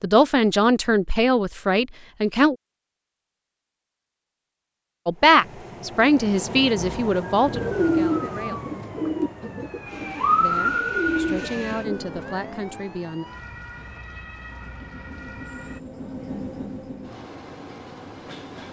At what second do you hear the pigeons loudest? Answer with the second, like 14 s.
8 s.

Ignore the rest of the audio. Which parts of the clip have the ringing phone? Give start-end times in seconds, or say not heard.
not heard.